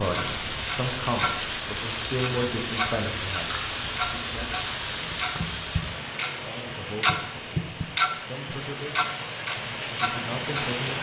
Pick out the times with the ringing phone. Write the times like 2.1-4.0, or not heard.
not heard.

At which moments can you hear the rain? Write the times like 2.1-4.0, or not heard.
0.0-10.9.